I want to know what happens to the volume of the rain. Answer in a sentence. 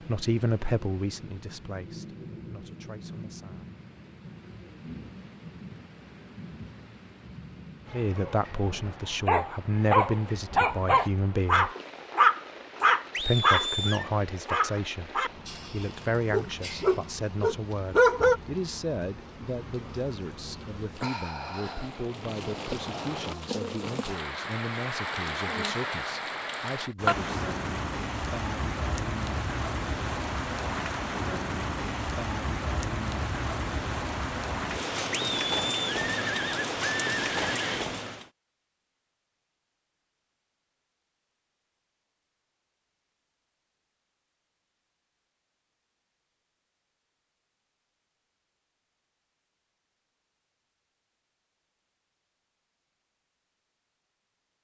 The loudness of the rain goes up.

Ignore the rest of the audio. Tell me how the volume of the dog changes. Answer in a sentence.
The volume of the dog goes down, then up.